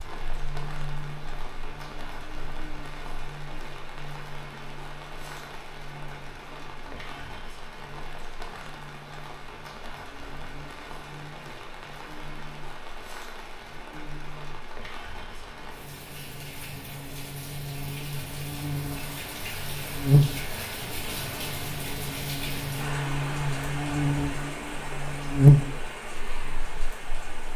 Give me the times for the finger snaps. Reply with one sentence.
You can't hear the finger snaps here.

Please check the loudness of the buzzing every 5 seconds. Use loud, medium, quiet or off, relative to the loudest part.
quiet, quiet, quiet, quiet, medium, loud.